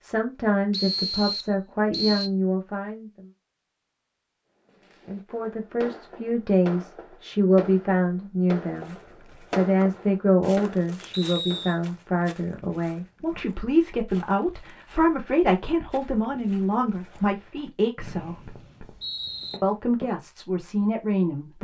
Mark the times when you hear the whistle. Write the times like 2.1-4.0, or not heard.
0.7-2.3, 11.1-11.8, 17.9-19.6.